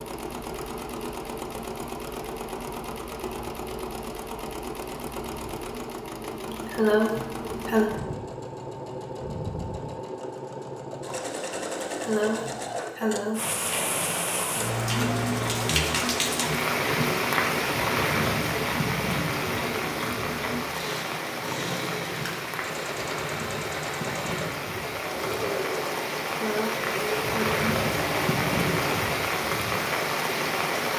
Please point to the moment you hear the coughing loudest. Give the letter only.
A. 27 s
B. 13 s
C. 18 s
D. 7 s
D.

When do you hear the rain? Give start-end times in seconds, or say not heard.
13.3-30.9.